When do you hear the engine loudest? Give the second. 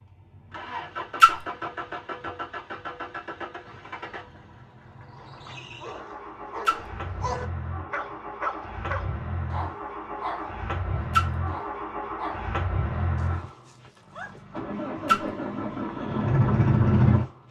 17 s.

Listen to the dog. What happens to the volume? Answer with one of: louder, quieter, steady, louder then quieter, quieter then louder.
louder then quieter.